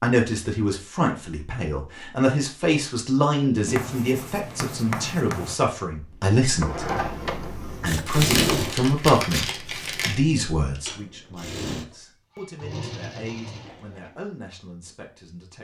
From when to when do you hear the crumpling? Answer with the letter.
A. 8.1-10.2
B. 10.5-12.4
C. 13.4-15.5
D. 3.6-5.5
A.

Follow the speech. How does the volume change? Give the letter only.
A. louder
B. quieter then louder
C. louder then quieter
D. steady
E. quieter
E.